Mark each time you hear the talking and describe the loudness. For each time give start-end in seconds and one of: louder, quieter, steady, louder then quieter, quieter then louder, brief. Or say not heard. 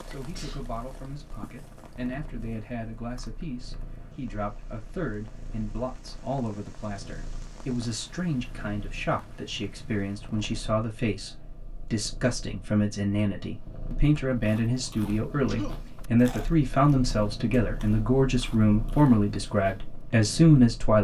0.1-20.9 louder.